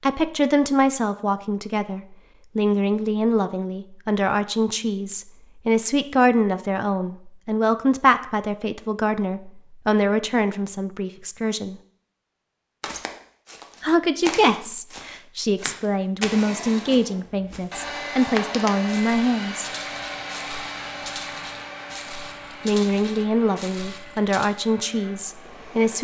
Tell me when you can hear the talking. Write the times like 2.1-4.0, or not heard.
0.0-11.8, 13.8-19.6, 22.6-26.0.